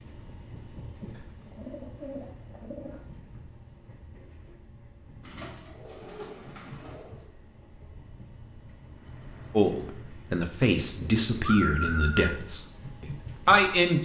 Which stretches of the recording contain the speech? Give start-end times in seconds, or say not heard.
9.5-14.0.